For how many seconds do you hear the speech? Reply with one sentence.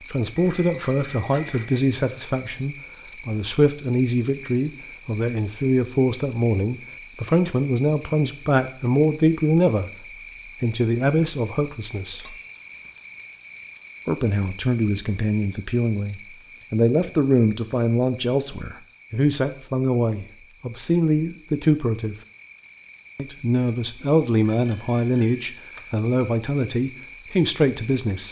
You can hear the speech for 25 seconds altogether.